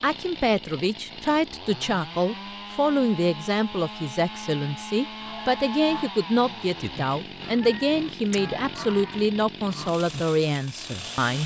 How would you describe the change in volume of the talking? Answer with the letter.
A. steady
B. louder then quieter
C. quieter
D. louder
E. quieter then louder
A.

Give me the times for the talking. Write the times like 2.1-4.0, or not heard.
0.0-11.4.